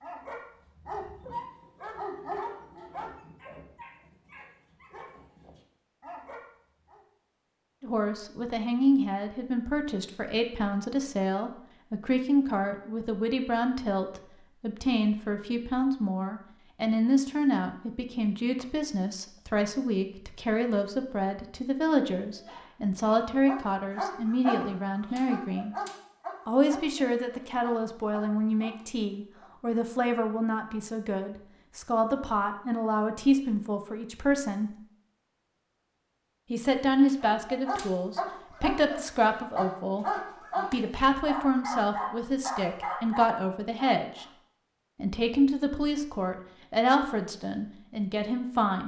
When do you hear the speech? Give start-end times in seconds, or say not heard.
7.8-25.8, 26.4-34.8, 36.5-44.2, 45.0-48.8.